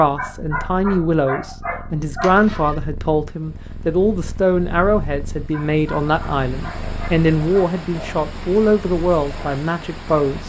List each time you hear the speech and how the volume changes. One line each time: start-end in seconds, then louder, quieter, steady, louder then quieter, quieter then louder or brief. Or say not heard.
0.0-10.4 steady.